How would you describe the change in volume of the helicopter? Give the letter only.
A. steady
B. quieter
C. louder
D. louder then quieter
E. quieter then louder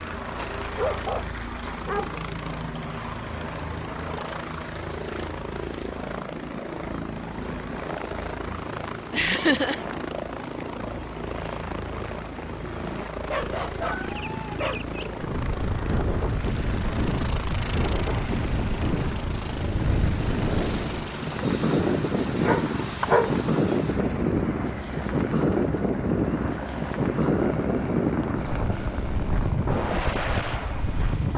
A.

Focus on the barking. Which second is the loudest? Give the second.
23 s.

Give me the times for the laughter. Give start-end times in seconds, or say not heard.
9.1-9.8.